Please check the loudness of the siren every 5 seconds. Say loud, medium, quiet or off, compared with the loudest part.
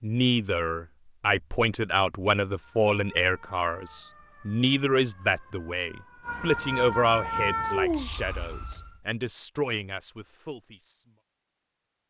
quiet, loud, off.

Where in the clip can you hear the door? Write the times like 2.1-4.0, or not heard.
not heard.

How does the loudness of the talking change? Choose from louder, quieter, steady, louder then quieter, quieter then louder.
quieter.